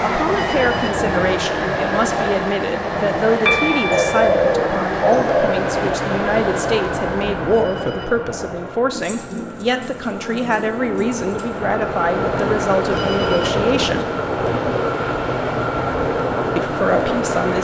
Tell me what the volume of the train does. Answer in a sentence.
The volume of the train goes down, then up.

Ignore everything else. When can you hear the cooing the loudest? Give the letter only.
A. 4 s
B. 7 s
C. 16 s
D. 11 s
A.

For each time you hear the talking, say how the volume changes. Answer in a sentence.
You can hear the talking from 0.0 to 14.1 s, at a steady volume; and briefly from 16.6 to 17.5 s.